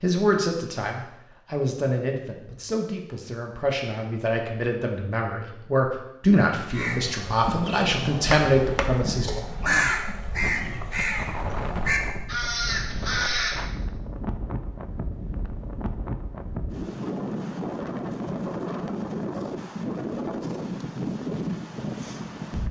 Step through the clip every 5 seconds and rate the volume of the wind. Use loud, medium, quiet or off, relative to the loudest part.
off, off, medium, loud, loud.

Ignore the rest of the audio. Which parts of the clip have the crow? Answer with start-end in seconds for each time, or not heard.
6.7-13.7.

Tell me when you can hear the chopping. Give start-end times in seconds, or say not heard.
8.3-9.9.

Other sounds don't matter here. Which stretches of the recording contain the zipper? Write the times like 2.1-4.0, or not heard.
not heard.